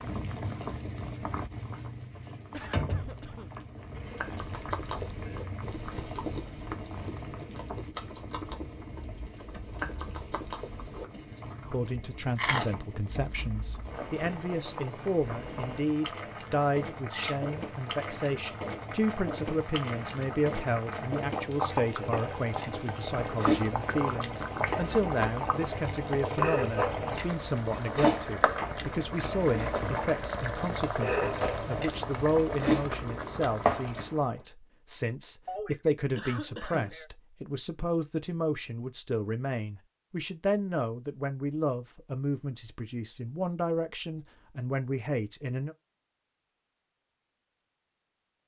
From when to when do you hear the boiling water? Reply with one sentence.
You can hear the boiling water from 0.0 to 34.2 s.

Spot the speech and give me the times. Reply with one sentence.
The speech can be heard from 11.7 to 45.8 s.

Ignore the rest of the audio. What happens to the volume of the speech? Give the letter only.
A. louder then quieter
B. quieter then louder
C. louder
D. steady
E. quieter
D.